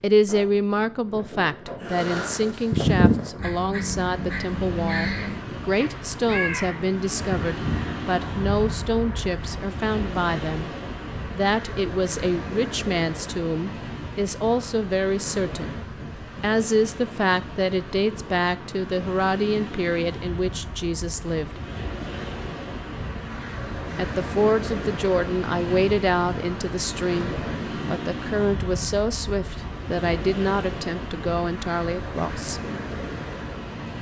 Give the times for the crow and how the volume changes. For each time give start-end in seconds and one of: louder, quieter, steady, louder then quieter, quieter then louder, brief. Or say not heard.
1.8-9.7 quieter.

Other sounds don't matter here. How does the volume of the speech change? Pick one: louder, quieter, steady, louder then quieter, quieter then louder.
steady.